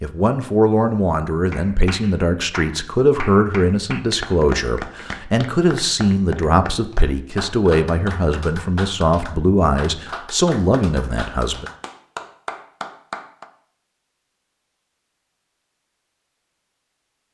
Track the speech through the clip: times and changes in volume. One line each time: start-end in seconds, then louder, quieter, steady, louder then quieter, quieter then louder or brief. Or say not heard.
0.0-11.7 steady.